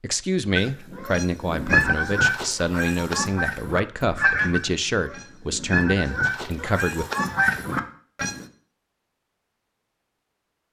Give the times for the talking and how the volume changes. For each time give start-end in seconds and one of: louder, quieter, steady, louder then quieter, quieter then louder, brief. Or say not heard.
0.0-7.0 steady.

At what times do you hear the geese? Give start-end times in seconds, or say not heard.
0.6-8.4.